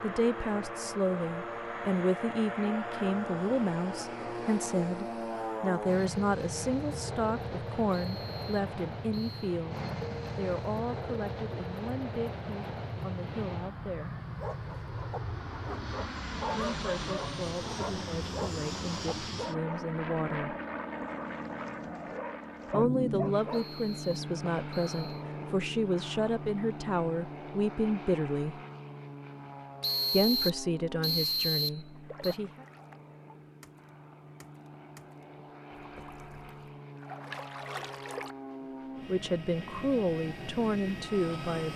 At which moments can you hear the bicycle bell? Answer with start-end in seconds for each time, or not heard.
not heard.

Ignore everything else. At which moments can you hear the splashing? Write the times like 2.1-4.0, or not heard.
32.0-38.4.